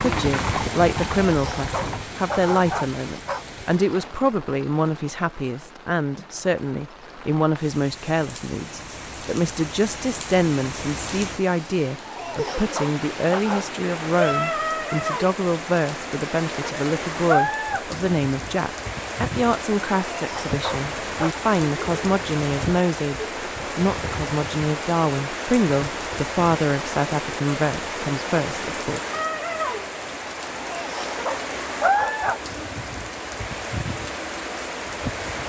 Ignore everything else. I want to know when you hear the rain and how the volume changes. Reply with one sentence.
You can hear the rain from 0.0 to 35.4 s, getting louder.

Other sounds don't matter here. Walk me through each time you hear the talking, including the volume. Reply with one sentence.
You can hear the talking from 0.0 to 29.0 s, at a steady volume.